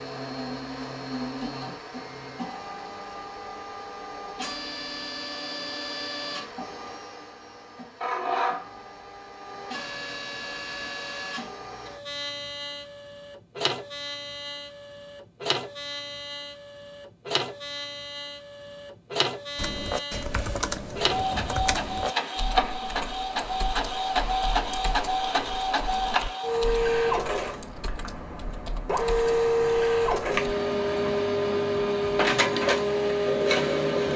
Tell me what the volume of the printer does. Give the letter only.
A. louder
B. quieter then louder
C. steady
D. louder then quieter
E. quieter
A.